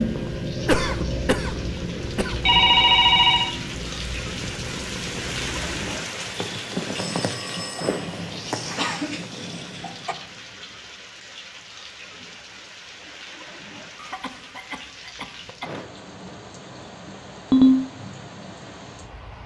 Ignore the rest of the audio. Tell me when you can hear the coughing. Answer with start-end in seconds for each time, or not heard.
0.6-2.4, 8.8-10.2, 13.9-15.8.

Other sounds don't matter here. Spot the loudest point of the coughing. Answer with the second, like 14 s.
1 s.